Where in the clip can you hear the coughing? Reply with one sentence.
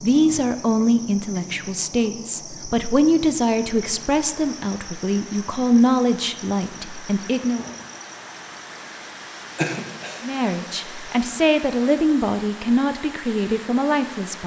The coughing can be heard from 9.6 to 10.2 s.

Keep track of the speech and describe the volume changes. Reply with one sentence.
The loudness of the speech stays about the same.